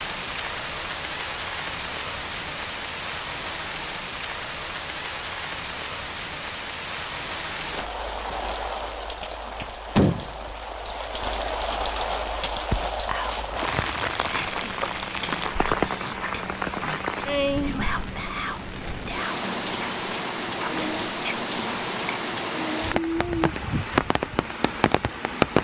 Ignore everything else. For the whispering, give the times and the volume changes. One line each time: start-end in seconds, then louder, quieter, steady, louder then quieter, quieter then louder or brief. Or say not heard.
13.1-22.3 steady.